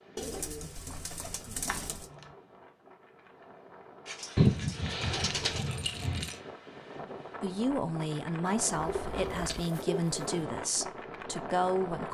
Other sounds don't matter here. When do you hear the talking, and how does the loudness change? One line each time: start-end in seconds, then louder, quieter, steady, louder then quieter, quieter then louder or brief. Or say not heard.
7.4-12.0 steady.